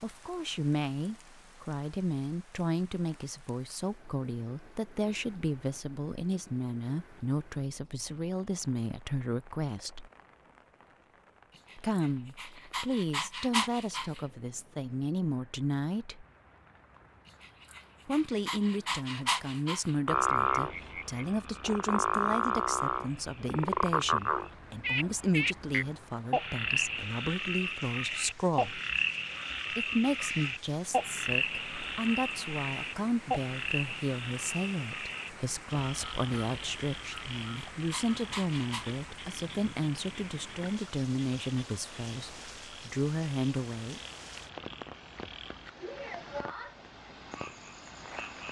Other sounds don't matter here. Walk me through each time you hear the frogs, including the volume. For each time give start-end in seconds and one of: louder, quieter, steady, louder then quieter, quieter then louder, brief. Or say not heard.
20.1-48.4 quieter.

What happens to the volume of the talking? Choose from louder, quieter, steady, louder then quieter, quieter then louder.
steady.